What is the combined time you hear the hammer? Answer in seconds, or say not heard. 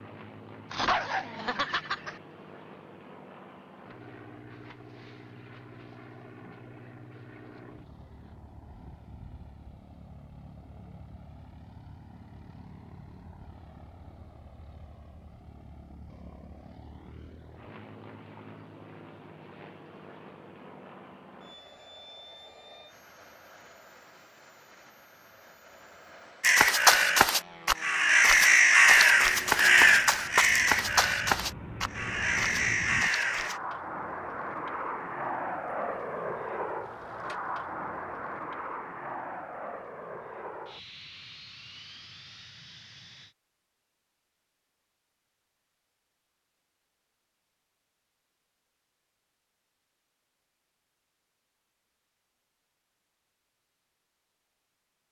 not heard.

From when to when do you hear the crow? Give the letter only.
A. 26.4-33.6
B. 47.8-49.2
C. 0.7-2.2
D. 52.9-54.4
A.